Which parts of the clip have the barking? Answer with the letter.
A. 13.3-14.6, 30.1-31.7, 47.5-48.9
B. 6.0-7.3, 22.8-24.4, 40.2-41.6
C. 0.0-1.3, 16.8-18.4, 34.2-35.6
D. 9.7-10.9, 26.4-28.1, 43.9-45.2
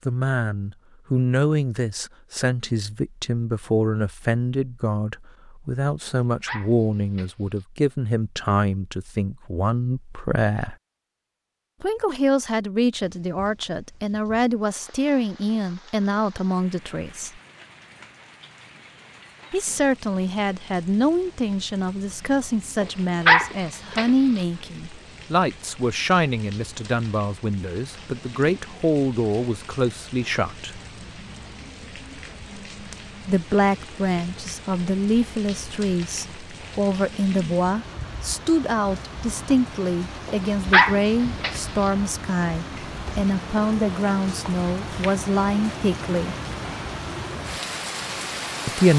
B.